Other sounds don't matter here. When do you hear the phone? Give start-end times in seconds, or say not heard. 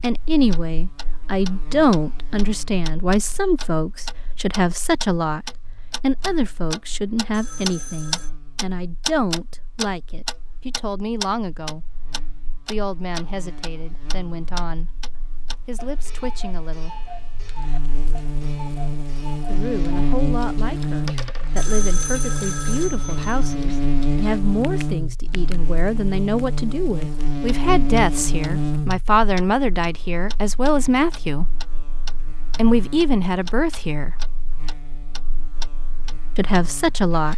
7.3-8.3, 21.6-23.6.